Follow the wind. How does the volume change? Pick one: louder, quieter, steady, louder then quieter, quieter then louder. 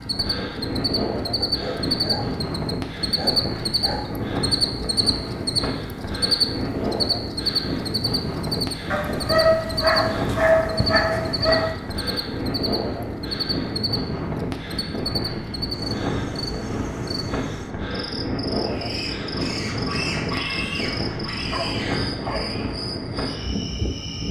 steady.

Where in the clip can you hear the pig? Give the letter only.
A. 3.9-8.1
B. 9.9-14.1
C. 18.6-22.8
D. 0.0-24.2
C.